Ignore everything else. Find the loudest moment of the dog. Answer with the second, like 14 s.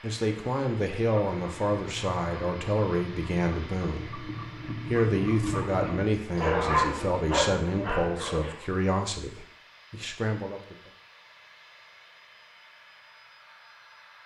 7 s.